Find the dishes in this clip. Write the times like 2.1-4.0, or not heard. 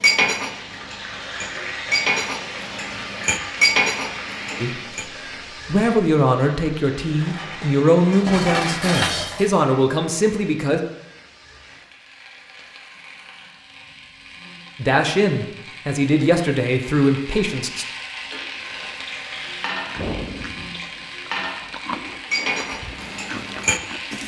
0.0-5.0, 7.2-9.6, 18.6-24.2.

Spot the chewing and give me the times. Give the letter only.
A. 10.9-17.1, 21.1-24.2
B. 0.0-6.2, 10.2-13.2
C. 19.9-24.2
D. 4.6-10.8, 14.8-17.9
C.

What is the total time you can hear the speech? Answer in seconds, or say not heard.
9 s.